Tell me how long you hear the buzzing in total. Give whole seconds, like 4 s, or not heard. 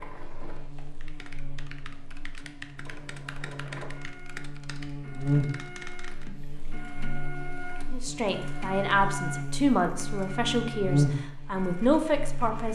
13 s.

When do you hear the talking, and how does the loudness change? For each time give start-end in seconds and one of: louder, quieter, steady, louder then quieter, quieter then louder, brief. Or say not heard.
7.9-12.7 quieter then louder.